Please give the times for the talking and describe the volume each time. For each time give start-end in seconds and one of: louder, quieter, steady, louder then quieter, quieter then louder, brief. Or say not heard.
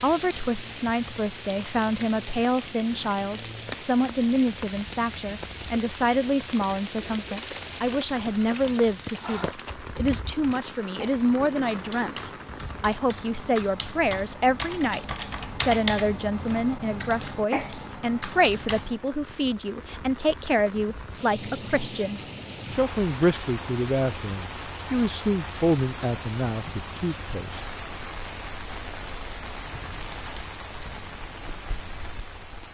0.0-27.6 steady.